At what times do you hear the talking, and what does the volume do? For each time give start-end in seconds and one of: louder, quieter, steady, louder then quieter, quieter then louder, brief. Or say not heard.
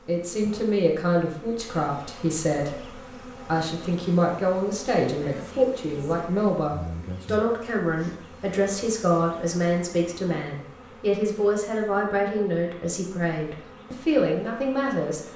0.1-15.2 steady.